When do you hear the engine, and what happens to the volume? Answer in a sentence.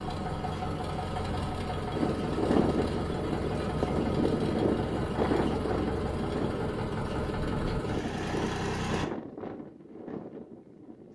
You can hear the engine from 0.0 to 9.1 s, at a steady volume.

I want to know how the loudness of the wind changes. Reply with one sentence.
The volume of the wind goes down.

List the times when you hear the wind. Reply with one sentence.
The wind can be heard from 1.9 to 11.1 s.